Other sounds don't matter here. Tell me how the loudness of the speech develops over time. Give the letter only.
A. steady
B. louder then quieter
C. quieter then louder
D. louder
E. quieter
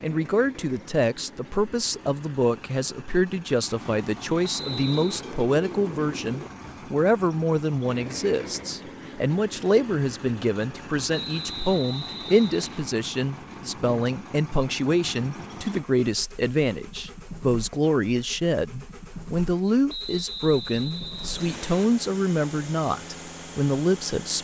A.